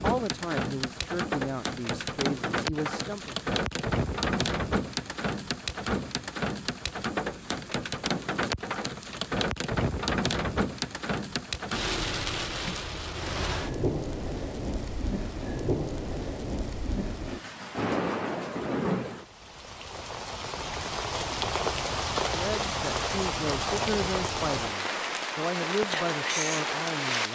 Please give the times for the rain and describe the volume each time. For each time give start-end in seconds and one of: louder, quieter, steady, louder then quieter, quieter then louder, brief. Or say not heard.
0.0-27.2 steady.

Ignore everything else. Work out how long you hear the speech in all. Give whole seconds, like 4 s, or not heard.
8 s.